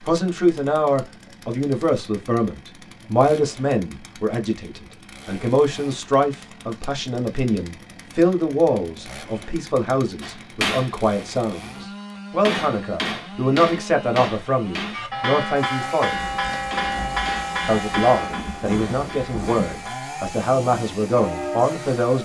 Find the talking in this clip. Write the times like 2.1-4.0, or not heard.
0.0-16.1, 17.6-22.2.